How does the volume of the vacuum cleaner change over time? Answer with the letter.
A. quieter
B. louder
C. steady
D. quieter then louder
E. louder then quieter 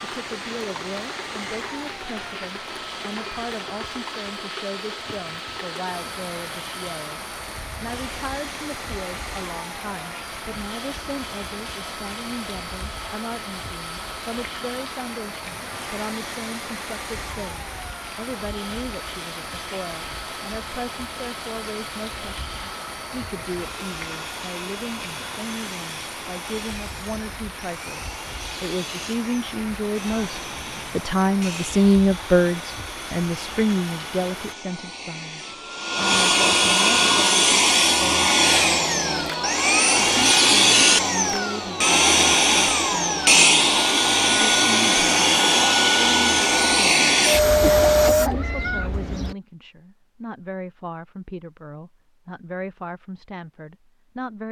B.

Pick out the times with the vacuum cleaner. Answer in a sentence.
The vacuum cleaner can be heard from 0.0 to 48.3 s.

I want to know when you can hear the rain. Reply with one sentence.
The rain can be heard from 0.0 to 34.5 s.